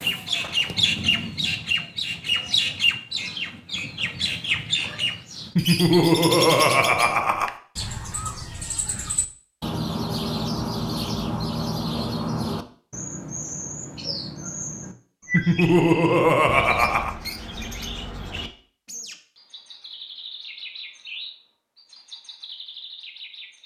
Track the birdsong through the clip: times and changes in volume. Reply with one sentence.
The birdsong can be heard from 0.0 to 23.6 s, getting quieter.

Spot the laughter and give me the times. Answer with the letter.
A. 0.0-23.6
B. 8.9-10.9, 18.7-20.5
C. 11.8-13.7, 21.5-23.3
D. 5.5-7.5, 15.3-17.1
D.